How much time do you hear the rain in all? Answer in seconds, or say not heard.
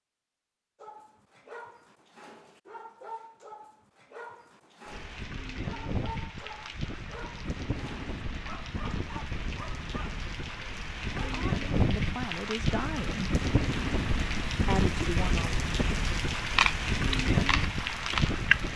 14 s.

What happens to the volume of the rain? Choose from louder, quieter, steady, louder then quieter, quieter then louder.
louder.